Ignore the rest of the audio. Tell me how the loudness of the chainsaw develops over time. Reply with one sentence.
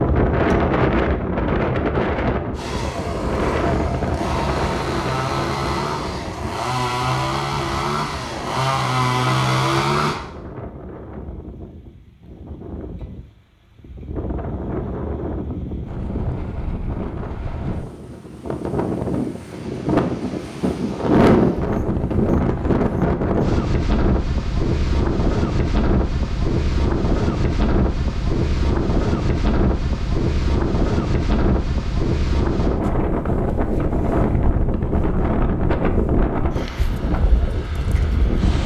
The loudness of the chainsaw goes up.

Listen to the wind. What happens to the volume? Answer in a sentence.
The loudness of the wind goes down, then up.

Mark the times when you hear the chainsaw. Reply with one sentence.
You can hear the chainsaw from 2.5 to 10.2 s.